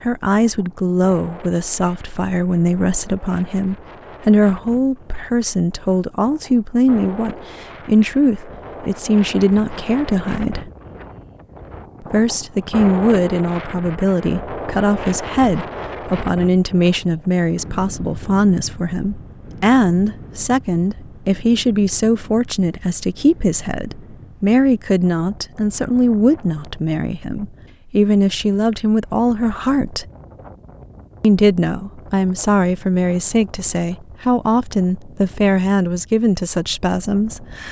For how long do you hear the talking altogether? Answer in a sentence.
The talking can be heard for 35 seconds in total.